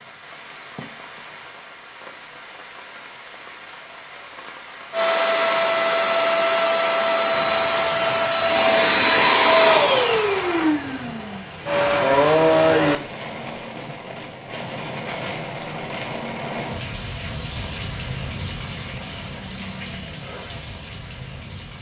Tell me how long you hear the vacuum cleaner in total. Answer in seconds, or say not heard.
8 s.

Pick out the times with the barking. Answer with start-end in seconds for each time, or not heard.
not heard.